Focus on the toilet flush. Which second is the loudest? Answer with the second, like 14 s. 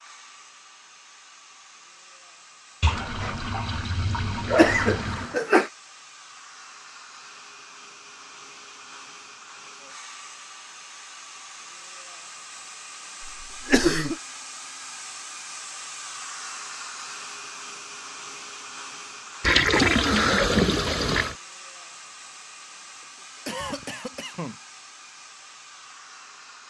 20 s.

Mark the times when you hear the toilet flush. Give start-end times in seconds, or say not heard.
2.8-5.3, 19.4-21.4.